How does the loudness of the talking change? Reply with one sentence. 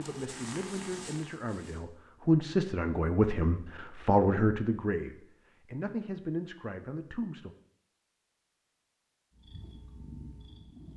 The loudness of the talking goes up, then down.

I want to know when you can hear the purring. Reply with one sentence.
The purring can be heard from 0.0 to 1.9 s and from 9.3 to 10.9 s.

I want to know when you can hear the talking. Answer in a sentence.
The talking can be heard from 0.0 to 7.5 s.